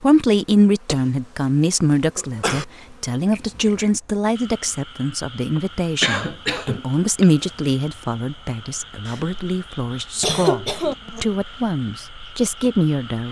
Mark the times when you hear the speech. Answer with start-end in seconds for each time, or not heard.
0.0-13.2.